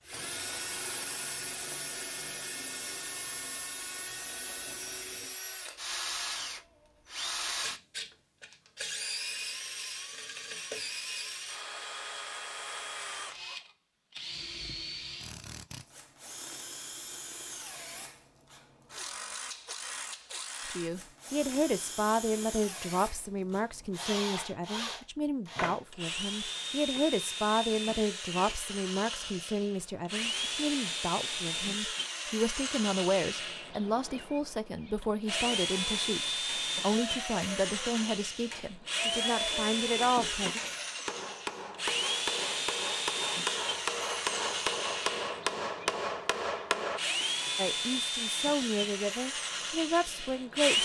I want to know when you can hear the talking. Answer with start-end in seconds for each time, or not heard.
20.6-40.6, 47.5-50.8.